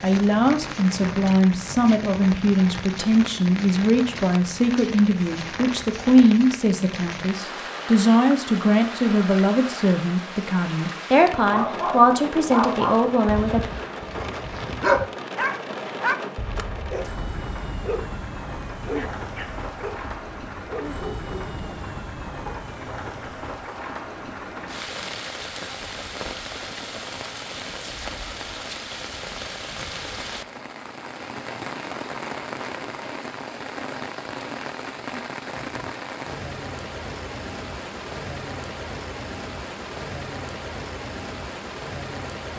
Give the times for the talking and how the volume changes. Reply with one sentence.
The talking can be heard from 0.0 to 13.7 s, at a steady volume.